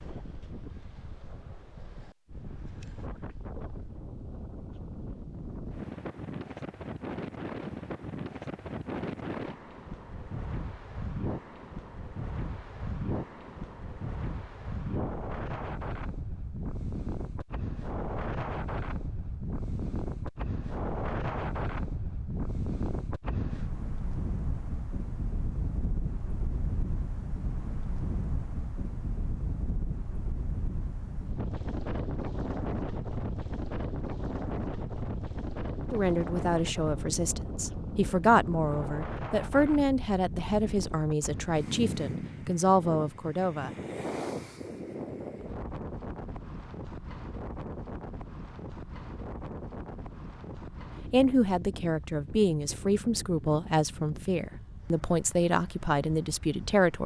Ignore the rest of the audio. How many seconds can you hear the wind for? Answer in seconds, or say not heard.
57 s.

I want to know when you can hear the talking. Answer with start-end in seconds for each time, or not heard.
35.9-43.7, 51.1-57.0.